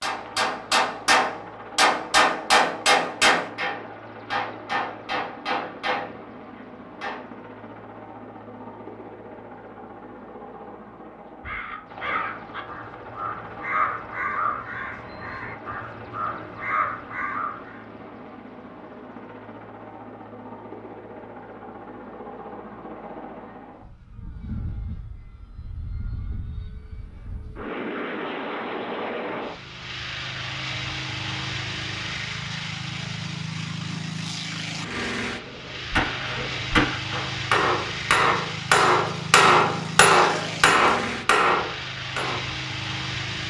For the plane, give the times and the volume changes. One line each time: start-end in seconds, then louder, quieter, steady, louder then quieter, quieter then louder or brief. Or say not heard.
0.0-43.4 louder.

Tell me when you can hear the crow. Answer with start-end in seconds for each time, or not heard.
11.4-17.9.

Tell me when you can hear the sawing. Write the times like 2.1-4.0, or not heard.
not heard.